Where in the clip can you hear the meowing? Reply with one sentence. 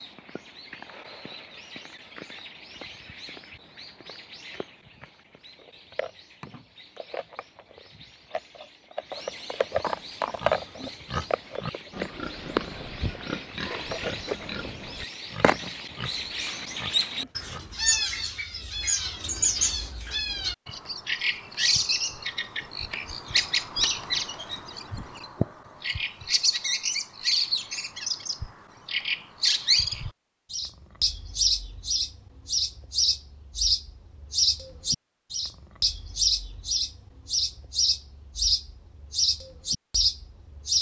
You can't hear the meowing here.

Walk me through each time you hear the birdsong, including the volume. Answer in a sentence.
You can hear the birdsong from 0.0 to 40.7 s, getting louder.